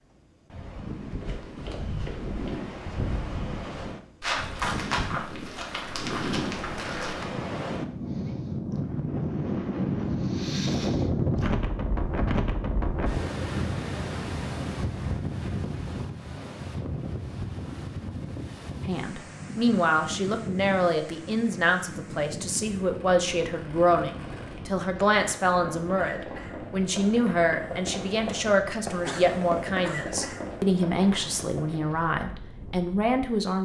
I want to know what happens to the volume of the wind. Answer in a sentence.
The loudness of the wind goes up, then down.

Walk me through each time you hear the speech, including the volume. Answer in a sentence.
You can hear the speech from 18.9 to 33.6 s, at a steady volume.